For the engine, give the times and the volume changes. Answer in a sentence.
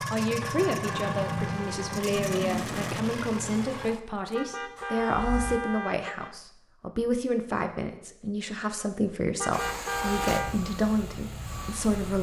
The engine can be heard from 0.0 to 5.6 s, getting quieter; and briefly from 9.5 to 12.1 s.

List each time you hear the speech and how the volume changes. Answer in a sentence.
You can hear the speech from 0.1 to 12.1 s, at a steady volume.